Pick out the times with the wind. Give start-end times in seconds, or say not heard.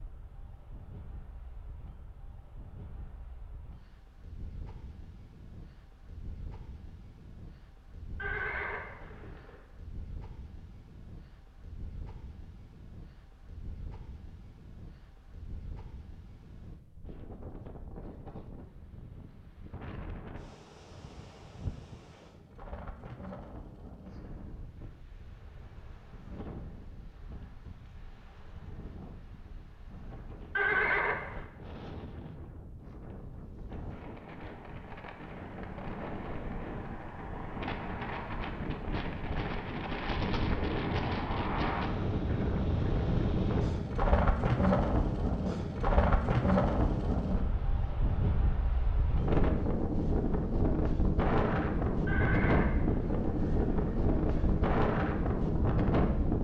0.0-56.4.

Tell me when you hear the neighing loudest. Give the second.
31 s.